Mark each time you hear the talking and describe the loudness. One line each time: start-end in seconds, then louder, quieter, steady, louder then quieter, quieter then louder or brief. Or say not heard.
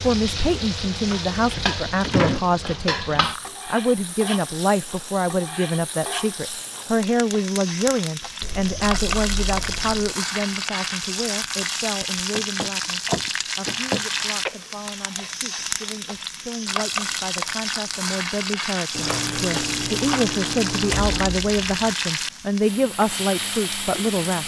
0.0-24.4 quieter then louder.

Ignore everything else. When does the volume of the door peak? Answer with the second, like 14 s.
2 s.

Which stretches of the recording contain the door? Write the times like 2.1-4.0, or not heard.
1.6-2.4, 12.3-14.1, 20.9-21.9.